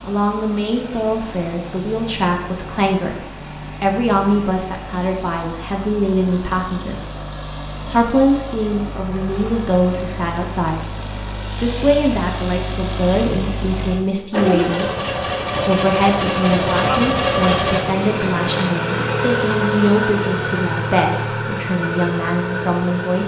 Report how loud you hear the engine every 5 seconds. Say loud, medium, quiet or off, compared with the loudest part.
quiet, quiet, medium, loud, loud.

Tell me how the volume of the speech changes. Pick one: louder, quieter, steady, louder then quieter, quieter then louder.
steady.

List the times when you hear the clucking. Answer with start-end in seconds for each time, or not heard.
not heard.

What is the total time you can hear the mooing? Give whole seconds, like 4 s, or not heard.
not heard.